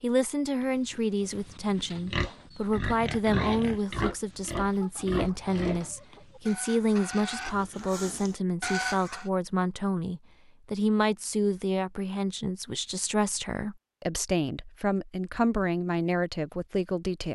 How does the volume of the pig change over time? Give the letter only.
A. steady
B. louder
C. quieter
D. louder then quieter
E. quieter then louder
B.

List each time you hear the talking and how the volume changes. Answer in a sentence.
You can hear the talking from 0.0 to 17.2 s, at a steady volume.